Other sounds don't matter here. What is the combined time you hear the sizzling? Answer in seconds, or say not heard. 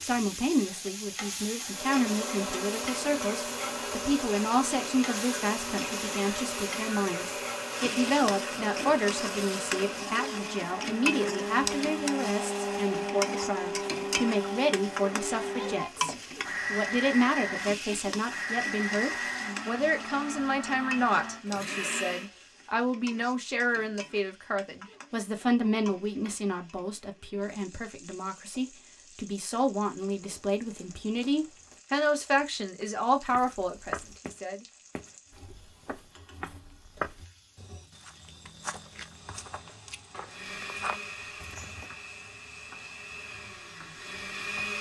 45 s.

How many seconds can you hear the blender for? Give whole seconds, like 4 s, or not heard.
25 s.